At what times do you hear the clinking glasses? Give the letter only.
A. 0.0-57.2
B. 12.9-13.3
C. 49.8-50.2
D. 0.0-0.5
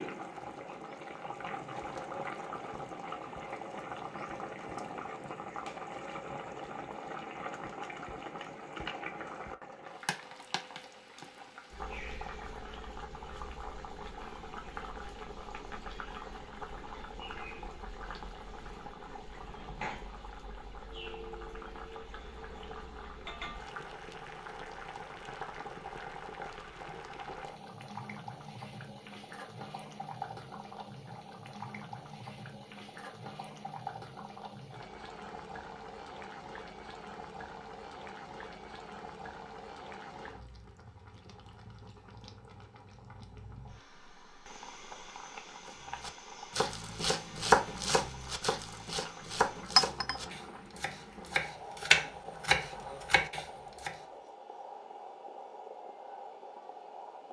C.